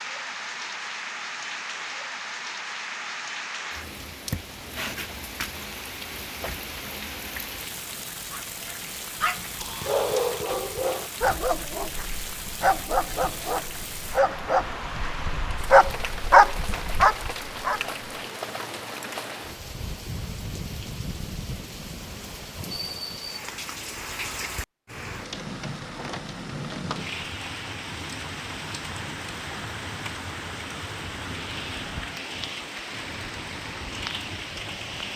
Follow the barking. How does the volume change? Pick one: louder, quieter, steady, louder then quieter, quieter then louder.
louder.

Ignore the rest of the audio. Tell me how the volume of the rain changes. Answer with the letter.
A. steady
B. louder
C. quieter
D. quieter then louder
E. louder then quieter
A.